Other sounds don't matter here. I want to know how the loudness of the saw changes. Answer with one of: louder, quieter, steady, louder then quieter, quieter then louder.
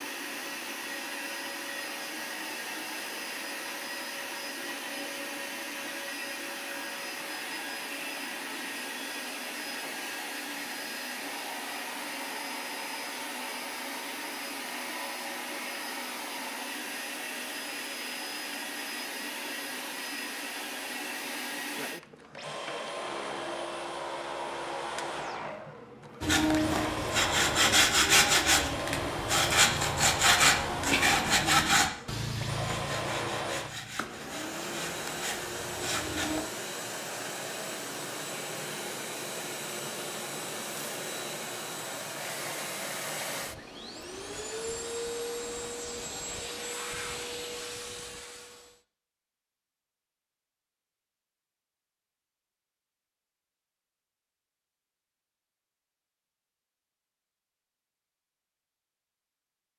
quieter.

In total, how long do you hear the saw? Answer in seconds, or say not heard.
10 s.